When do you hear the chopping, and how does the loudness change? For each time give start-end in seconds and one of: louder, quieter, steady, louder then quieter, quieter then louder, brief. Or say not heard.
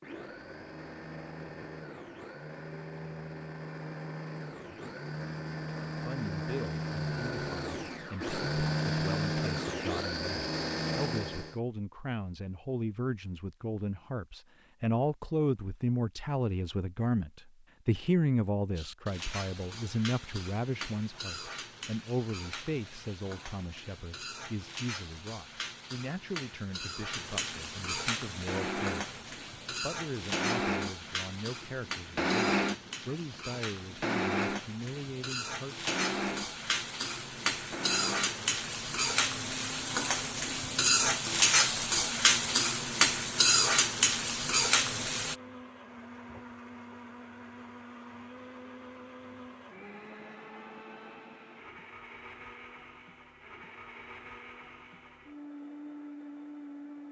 not heard.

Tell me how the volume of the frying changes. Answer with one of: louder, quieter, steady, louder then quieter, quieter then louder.
louder.